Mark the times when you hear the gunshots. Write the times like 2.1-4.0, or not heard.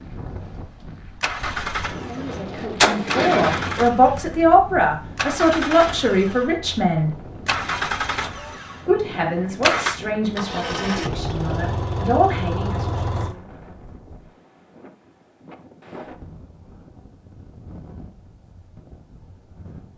2.8-4.3.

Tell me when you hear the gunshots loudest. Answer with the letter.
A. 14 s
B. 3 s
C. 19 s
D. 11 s
B.